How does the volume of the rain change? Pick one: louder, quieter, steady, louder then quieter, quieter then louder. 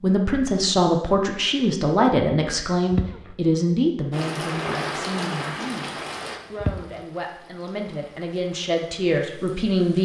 quieter.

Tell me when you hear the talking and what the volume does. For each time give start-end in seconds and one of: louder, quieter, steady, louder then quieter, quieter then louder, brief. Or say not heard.
0.0-10.0 quieter then louder.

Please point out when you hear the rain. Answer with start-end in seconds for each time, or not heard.
4.1-10.0.